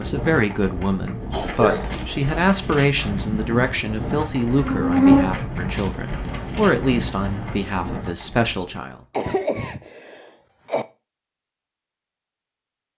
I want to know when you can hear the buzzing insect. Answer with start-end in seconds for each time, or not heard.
3.1-7.8.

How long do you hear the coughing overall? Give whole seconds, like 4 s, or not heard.
4 s.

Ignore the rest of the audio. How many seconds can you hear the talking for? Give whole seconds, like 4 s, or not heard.
9 s.